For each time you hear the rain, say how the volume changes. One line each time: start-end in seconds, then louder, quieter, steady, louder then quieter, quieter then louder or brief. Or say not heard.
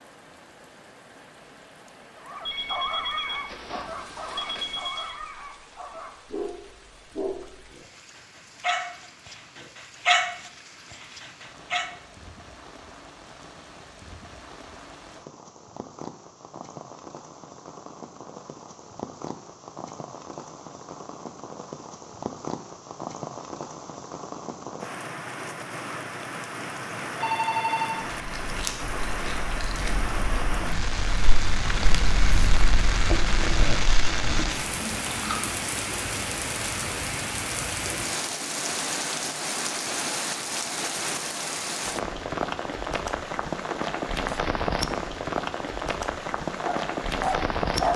0.0-47.9 louder.